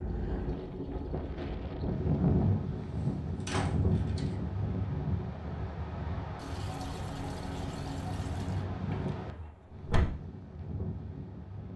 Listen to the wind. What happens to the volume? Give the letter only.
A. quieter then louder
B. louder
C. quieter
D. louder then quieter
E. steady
C.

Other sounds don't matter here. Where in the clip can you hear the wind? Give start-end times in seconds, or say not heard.
0.0-11.7.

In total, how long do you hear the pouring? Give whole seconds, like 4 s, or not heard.
4 s.